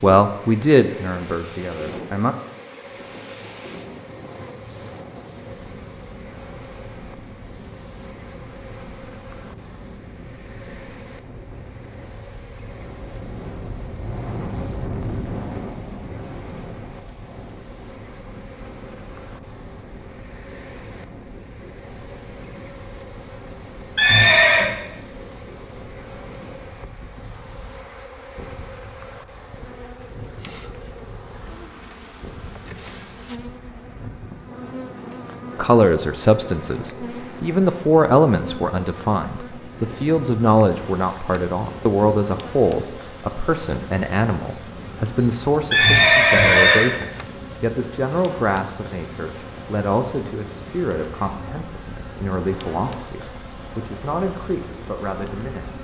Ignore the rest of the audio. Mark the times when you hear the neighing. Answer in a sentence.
You can hear the neighing from 23.9 to 24.7 s and from 45.7 to 46.9 s.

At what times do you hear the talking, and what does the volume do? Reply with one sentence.
The talking can be heard briefly from 0.0 to 2.4 s; and from 35.5 to 55.7 s, getting quieter.